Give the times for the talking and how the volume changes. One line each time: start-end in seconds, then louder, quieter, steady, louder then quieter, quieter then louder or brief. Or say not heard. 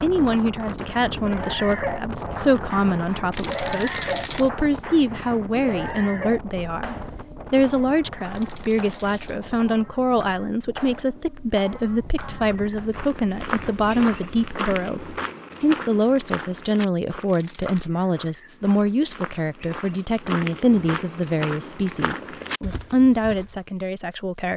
0.0-24.5 steady.